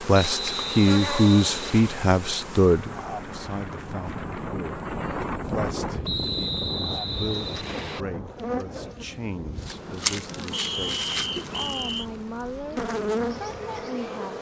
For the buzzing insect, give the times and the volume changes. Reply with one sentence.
The buzzing insect can be heard from 0.0 to 14.3 s, getting quieter then louder.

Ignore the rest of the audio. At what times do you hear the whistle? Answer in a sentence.
The whistle can be heard from 0.2 to 1.9 s, from 6.0 to 8.1 s and from 10.5 to 12.1 s.